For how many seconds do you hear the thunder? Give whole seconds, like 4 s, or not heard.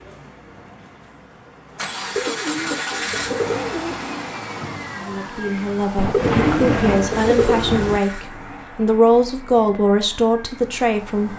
2 s.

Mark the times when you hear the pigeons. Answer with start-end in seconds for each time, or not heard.
2.1-4.0, 6.1-7.7.